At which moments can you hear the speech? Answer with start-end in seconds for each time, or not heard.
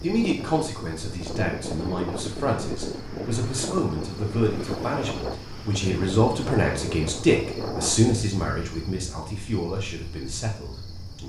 0.0-11.2.